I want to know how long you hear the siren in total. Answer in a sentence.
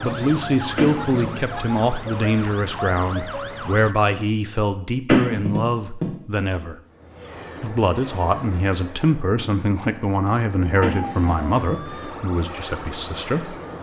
The siren can be heard for 7 seconds in total.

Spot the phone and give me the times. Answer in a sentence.
The phone can be heard from 0.8 to 1.3 s, from 5.0 to 6.0 s and from 10.8 to 11.8 s.